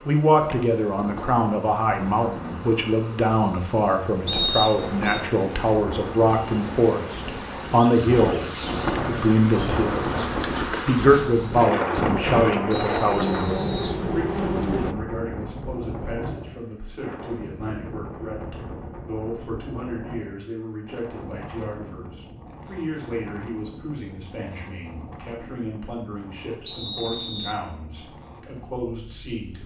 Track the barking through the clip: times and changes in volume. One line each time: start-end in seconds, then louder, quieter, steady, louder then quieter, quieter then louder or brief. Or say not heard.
not heard.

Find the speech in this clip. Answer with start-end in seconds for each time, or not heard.
0.1-29.6.